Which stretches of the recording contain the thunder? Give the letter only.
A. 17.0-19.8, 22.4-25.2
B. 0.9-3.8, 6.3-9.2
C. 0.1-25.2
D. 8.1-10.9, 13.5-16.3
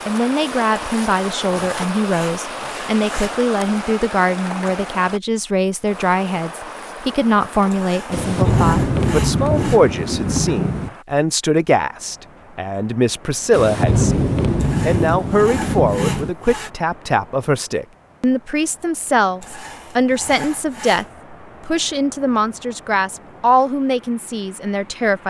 D.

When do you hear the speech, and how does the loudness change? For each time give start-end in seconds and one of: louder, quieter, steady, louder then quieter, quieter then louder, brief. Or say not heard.
0.1-25.2 steady.